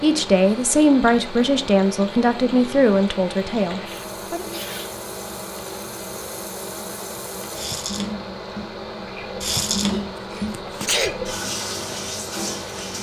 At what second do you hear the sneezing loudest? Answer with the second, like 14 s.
11 s.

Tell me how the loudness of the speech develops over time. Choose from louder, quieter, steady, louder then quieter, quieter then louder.
quieter.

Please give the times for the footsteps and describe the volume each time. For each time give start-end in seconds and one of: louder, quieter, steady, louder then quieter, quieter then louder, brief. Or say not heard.
not heard.